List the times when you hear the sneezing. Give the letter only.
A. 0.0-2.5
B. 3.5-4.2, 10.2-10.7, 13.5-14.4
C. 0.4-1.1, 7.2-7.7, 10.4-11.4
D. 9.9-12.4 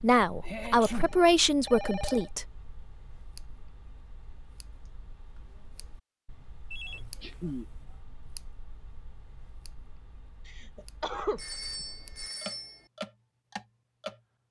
C.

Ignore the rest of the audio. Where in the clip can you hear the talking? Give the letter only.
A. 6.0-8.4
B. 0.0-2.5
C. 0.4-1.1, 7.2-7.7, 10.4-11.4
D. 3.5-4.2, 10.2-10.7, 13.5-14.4
B.